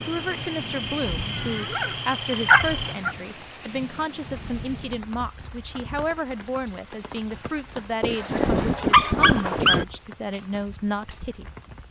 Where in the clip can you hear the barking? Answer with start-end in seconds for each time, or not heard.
1.4-3.1, 8.0-9.8.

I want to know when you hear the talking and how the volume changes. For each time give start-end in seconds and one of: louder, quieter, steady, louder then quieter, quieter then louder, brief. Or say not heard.
0.0-11.5 steady.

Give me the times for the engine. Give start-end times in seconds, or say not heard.
0.0-3.0.